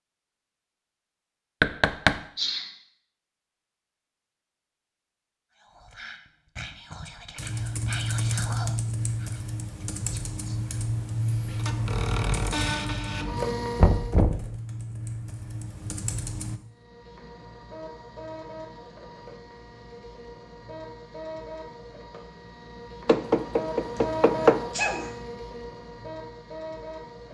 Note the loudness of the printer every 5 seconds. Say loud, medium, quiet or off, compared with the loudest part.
off, off, loud, quiet, medium, medium.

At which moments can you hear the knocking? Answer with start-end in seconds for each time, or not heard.
1.6-2.2, 13.8-14.6, 23.1-24.6.